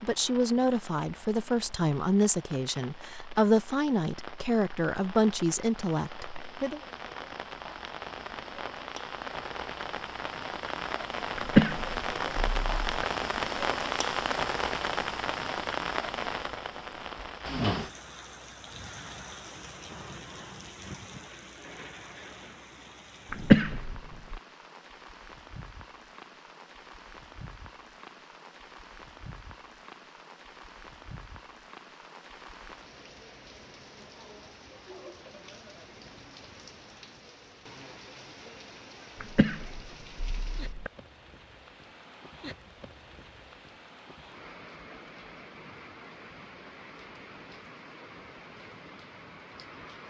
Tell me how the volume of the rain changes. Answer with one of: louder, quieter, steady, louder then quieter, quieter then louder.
louder then quieter.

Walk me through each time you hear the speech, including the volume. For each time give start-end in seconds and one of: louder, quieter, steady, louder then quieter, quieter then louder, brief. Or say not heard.
0.0-6.8 steady.